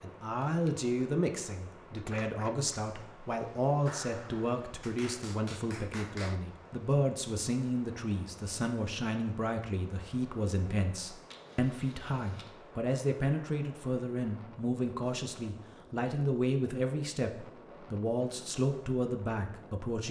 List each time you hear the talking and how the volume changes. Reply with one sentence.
The talking can be heard from 0.0 to 20.0 s, at a steady volume.